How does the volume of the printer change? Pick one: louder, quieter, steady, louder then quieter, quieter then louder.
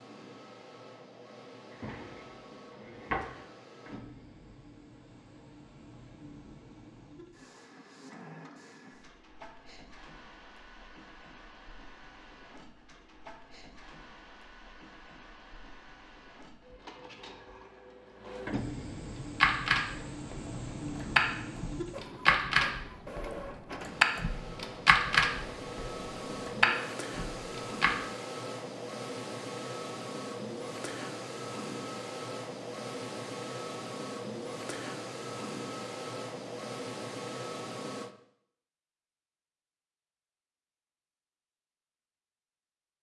louder.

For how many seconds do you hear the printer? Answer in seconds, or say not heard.
38 s.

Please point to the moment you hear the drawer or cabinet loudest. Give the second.
3 s.